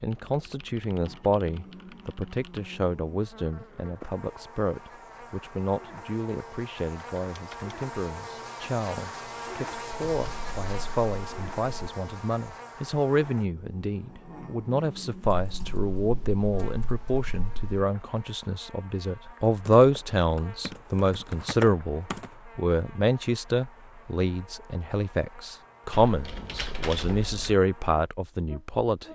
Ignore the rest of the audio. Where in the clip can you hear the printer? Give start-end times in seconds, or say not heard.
not heard.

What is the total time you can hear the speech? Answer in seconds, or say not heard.
29 s.